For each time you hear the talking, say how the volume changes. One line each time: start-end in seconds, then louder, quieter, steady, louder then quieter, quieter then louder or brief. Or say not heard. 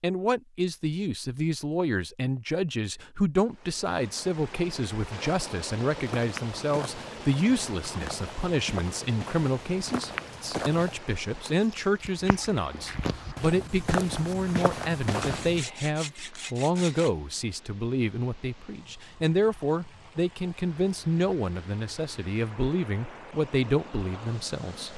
0.0-24.9 steady.